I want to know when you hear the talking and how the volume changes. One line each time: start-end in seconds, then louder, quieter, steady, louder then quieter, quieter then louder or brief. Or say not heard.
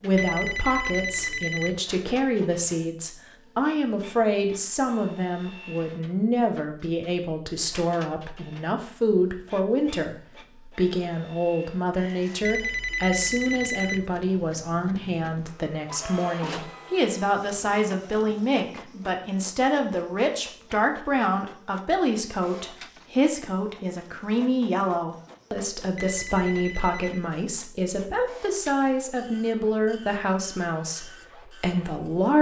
0.0-32.3 steady.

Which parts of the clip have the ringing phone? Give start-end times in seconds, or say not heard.
0.1-1.8, 12.4-14.1, 25.9-27.3.